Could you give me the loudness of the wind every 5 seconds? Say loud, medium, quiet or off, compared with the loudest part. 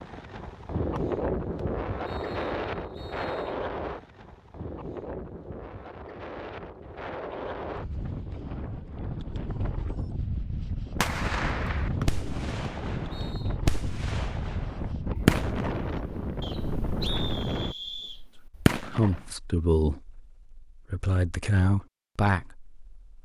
loud, medium, loud, loud, off.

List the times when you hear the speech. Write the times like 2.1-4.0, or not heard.
18.8-23.1.